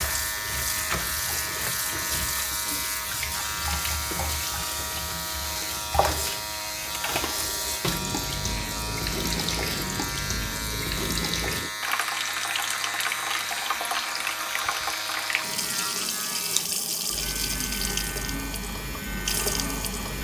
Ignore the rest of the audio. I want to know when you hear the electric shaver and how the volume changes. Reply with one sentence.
You can hear the electric shaver from 0.0 to 20.2 s, at a steady volume.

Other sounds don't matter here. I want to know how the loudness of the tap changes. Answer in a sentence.
The loudness of the tap stays about the same.